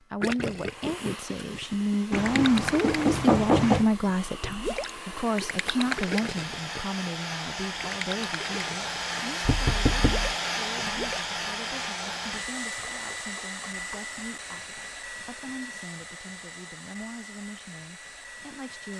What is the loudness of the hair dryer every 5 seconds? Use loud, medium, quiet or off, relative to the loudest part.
medium, loud, loud, medium.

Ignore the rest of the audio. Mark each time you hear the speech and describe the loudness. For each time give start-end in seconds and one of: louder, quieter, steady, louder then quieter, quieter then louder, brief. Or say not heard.
0.1-18.9 quieter.